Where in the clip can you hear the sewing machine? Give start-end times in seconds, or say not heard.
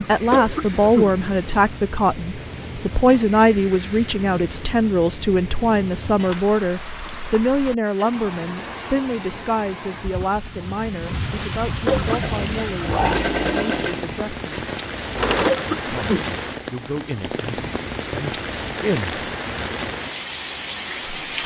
12.1-15.5.